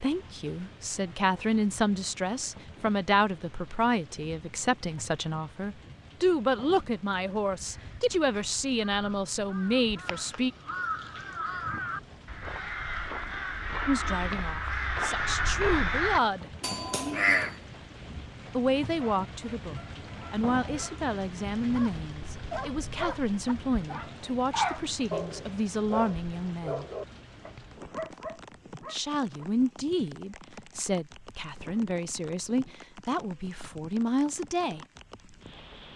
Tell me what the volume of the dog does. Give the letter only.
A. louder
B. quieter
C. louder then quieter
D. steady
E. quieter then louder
C.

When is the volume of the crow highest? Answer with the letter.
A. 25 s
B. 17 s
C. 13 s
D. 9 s
B.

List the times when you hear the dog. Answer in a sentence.
The dog can be heard from 18.9 to 29.4 s.